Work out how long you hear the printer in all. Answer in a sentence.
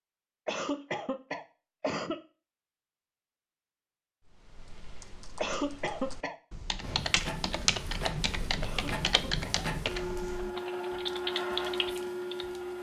You can hear the printer for 6 seconds altogether.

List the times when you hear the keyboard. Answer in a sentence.
The keyboard can be heard from 4.2 to 12.6 s.